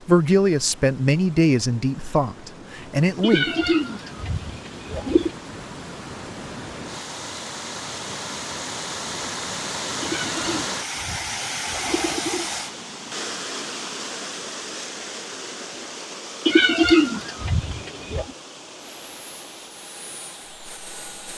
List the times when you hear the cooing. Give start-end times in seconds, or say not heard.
3.2-5.3, 10.0-12.5, 16.4-18.3.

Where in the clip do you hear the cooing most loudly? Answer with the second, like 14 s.
17 s.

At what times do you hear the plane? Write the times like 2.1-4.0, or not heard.
18.8-21.3.